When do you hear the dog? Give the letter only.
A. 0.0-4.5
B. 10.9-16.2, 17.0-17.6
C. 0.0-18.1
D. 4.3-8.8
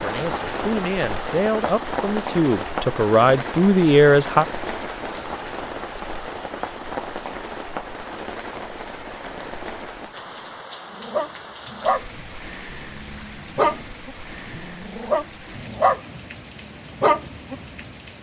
B.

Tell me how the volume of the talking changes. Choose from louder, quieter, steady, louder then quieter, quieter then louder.
louder.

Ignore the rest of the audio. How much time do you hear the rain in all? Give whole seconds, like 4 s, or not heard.
18 s.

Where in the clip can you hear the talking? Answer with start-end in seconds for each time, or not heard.
0.0-4.5.